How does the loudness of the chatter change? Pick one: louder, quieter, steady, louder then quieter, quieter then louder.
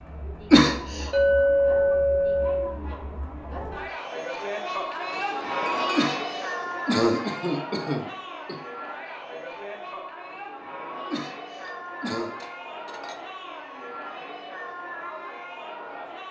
louder then quieter.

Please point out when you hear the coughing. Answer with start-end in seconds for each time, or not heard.
0.5-1.1, 6.0-8.6, 11.1-12.3.